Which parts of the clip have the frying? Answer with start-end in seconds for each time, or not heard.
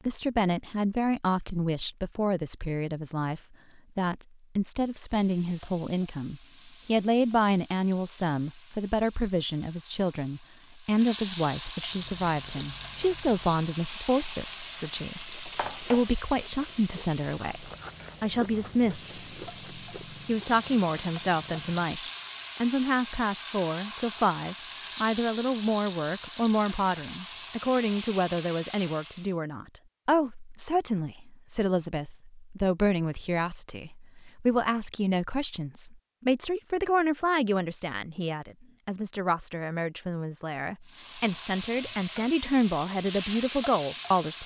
5.0-29.4, 40.9-44.4.